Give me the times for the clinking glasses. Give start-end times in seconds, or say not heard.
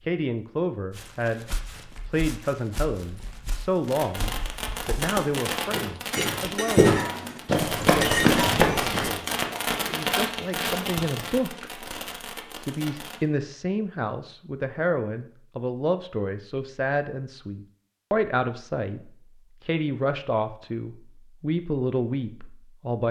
6.1-8.6.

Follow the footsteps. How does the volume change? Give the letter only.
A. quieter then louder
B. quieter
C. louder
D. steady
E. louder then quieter
C.